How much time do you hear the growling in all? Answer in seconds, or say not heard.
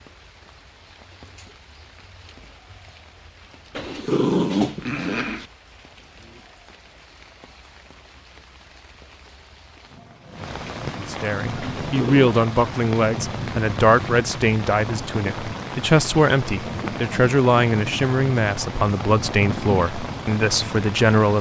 2 s.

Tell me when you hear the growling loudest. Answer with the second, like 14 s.
4 s.